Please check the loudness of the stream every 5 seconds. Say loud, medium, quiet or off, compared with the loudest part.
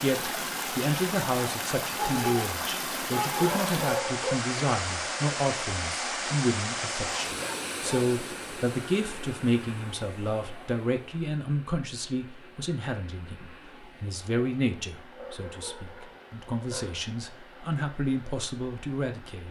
loud, loud, quiet, quiet.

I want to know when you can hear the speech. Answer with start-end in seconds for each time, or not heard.
0.0-19.4.